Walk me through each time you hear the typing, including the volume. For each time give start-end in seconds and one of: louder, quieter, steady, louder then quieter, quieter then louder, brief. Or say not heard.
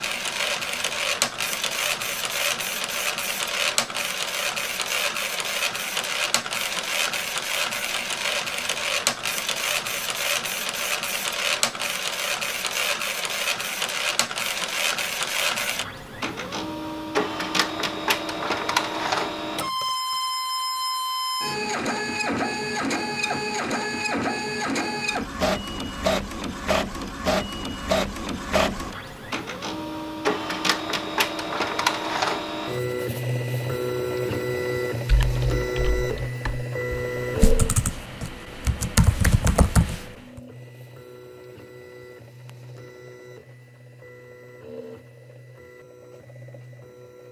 35.0-40.4 louder.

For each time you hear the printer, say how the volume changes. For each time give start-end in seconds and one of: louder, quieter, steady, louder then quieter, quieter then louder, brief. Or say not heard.
0.0-47.2 quieter.